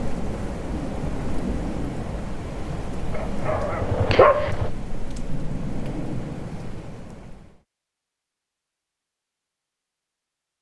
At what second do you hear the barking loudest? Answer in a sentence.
The volume of the barking peaks at 4 seconds.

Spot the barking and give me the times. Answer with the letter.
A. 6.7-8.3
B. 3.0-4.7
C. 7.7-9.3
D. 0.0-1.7
B.